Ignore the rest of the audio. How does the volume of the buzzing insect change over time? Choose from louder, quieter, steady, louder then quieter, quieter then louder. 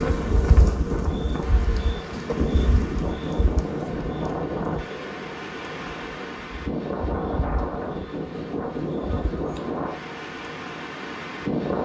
quieter.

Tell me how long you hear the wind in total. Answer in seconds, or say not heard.
12 s.